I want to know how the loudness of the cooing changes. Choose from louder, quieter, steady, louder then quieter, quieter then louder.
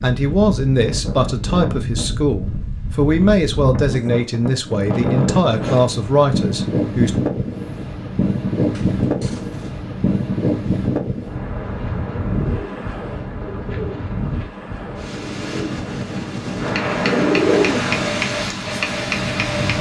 louder.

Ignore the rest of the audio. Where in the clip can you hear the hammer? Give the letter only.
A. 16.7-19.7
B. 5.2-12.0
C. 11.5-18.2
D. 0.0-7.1
A.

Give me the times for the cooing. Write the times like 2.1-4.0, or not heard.
11.5-18.2.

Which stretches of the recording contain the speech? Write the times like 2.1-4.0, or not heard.
0.0-7.1.